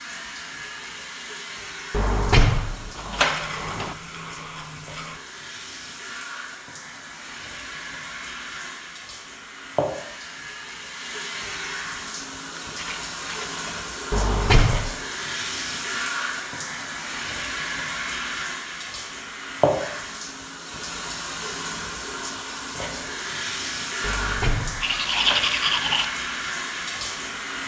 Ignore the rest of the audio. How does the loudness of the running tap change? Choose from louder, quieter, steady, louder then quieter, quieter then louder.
louder.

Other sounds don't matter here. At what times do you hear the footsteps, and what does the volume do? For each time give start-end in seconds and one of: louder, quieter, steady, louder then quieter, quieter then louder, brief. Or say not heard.
not heard.